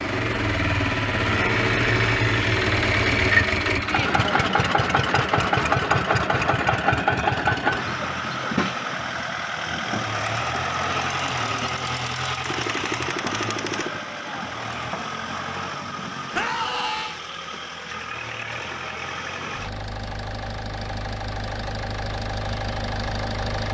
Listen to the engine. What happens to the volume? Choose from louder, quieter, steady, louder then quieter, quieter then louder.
quieter.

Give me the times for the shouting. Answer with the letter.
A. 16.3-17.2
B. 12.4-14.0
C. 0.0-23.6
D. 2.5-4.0
A.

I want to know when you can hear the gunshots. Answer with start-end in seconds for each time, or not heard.
12.4-14.0.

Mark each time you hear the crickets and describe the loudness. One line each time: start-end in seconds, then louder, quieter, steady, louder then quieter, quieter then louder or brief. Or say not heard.
not heard.